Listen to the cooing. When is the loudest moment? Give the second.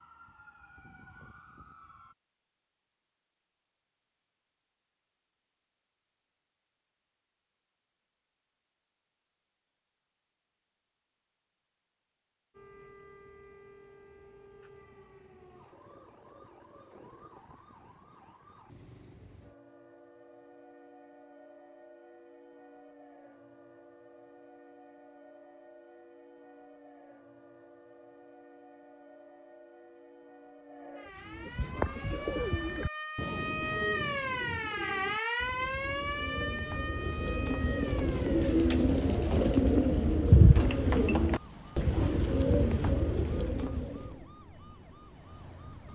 40 s.